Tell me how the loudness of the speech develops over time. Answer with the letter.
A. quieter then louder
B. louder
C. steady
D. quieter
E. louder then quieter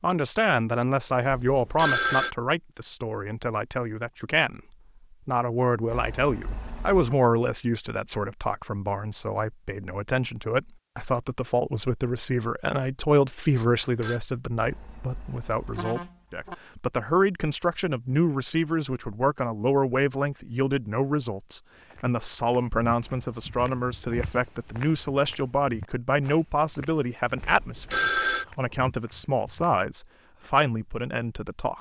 C.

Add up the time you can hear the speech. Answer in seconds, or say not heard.
31 s.